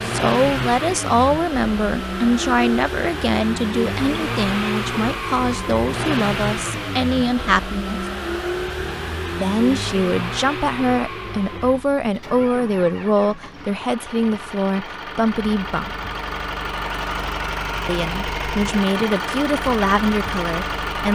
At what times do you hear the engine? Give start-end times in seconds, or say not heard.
0.0-21.1.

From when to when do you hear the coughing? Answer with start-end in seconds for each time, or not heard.
not heard.